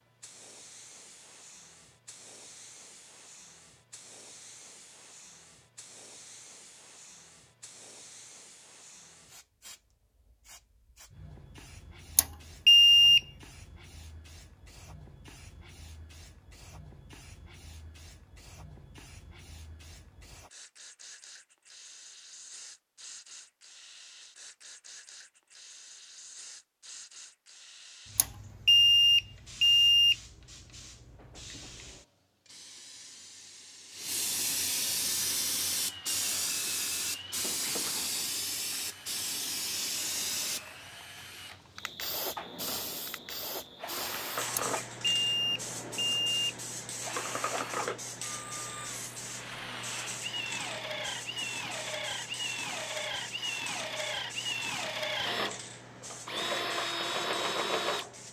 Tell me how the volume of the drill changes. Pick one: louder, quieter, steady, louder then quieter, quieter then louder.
louder.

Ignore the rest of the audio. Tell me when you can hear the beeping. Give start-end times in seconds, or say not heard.
12.2-13.2, 28.1-30.1, 44.5-46.5.